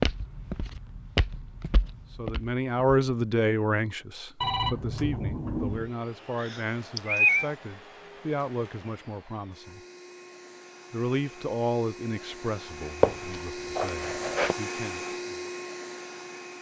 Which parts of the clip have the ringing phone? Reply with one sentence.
You can hear the ringing phone from 4.4 to 5.9 s.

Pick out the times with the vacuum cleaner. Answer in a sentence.
You can hear the vacuum cleaner from 5.7 to 16.5 s.